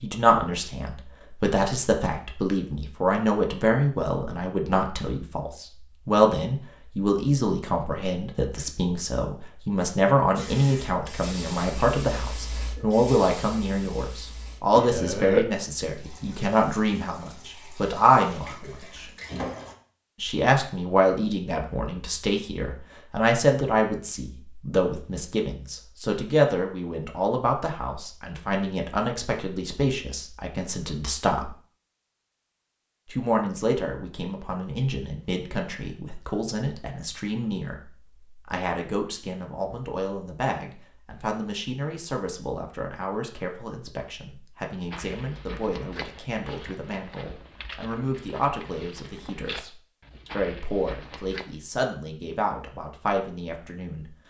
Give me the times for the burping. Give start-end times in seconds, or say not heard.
14.9-15.5.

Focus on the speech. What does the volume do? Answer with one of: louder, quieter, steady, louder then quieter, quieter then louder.
quieter.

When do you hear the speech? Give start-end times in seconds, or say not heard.
0.0-19.1, 20.2-31.6, 33.1-54.0.